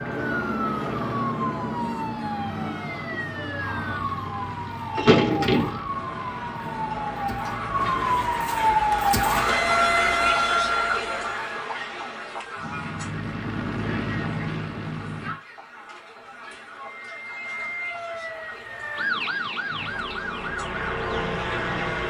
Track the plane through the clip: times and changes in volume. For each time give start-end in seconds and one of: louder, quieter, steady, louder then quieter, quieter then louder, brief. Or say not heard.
0.0-8.3 quieter
12.6-15.4 brief
19.6-22.0 brief.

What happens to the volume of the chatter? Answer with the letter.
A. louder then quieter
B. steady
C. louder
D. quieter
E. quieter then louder
A.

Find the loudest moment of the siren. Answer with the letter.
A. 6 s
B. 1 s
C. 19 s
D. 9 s
D.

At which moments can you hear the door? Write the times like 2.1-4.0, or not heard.
5.0-5.8.